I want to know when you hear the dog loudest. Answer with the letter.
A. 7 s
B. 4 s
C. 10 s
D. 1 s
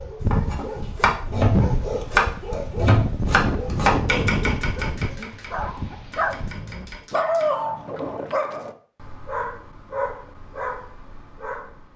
A.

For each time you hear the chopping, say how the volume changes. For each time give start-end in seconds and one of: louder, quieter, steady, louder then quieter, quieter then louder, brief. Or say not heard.
0.3-7.6 quieter.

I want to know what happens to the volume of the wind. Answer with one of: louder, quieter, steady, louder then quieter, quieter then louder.
louder then quieter.